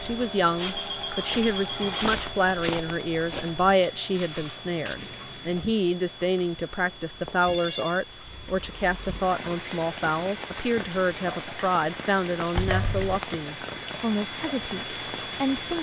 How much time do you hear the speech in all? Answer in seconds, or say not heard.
16 s.